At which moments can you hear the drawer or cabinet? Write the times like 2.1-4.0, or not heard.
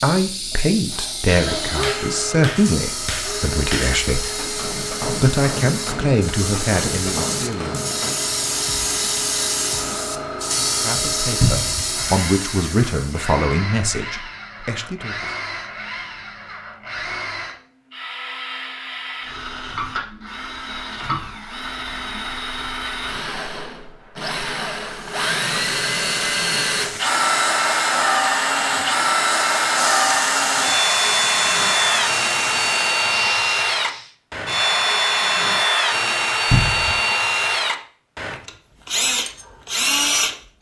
11.4-11.9, 36.5-37.0.